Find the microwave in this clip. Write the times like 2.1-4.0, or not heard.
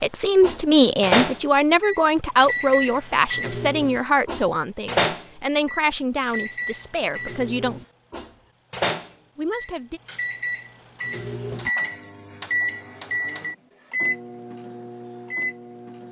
0.4-16.0.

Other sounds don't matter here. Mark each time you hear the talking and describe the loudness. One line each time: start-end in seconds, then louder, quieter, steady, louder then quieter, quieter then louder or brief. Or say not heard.
0.0-7.8 quieter
9.3-10.0 brief.